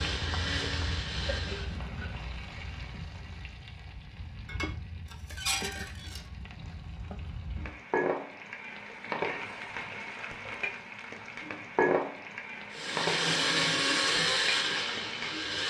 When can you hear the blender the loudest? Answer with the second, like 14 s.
14 s.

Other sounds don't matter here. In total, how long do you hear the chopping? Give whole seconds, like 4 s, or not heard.
not heard.